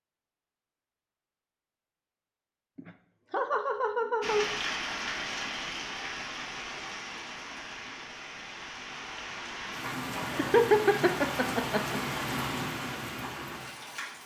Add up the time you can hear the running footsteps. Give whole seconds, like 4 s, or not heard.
not heard.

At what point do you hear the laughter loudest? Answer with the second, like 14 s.
11 s.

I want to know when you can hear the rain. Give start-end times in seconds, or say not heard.
4.2-14.2.